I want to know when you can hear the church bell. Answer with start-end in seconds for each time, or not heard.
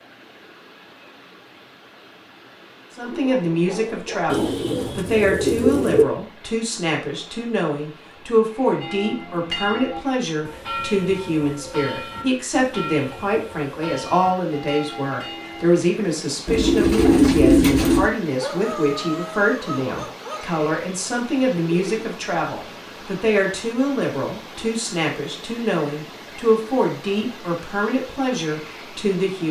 8.8-15.7.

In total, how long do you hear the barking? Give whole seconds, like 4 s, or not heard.
4 s.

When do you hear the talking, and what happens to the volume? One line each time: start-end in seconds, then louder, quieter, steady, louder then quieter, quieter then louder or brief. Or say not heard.
3.0-29.4 steady.